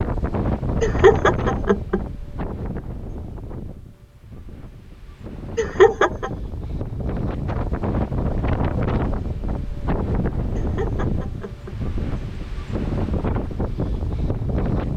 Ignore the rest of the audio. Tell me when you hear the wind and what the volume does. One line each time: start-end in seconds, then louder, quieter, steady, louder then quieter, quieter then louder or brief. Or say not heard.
0.0-14.9 quieter then louder.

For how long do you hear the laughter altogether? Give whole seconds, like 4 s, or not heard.
3 s.